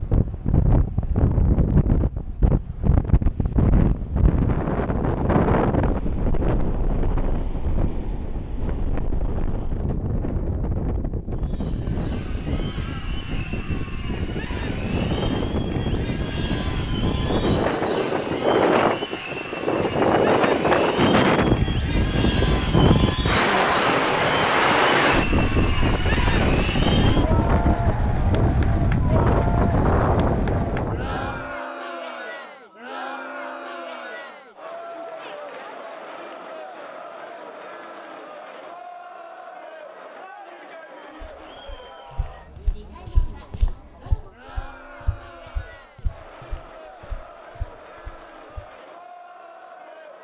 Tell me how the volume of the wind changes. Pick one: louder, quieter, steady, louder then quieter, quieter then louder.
quieter then louder.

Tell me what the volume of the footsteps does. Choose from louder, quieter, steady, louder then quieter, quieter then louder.
quieter.